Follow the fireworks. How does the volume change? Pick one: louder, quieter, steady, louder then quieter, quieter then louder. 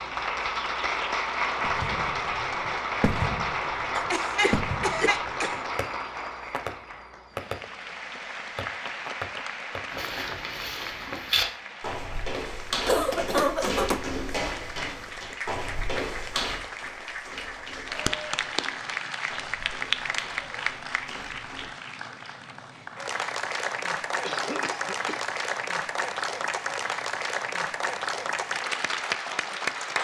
quieter then louder.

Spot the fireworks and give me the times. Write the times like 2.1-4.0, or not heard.
1.6-10.0.